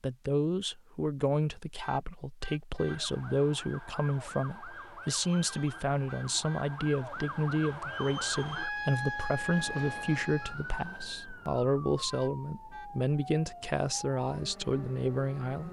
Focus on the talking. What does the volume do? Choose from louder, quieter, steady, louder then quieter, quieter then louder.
steady.